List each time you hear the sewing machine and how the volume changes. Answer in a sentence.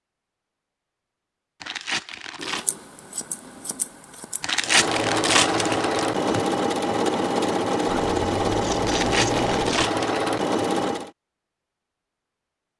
You can hear the sewing machine from 4.6 to 11.1 s, at a steady volume.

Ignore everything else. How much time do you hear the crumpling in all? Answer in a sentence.
You can hear the crumpling for 5 seconds altogether.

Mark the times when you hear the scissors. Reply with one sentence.
The scissors can be heard from 2.4 to 4.4 s and from 7.8 to 9.9 s.